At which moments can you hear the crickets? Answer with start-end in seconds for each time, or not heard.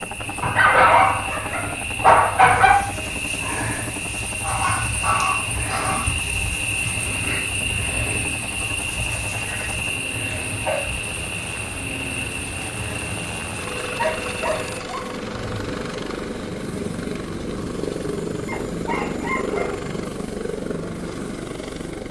0.0-14.8.